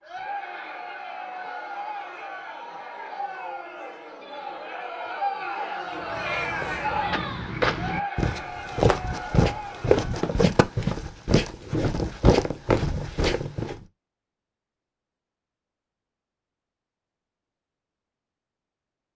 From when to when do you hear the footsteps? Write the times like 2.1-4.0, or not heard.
5.9-13.8.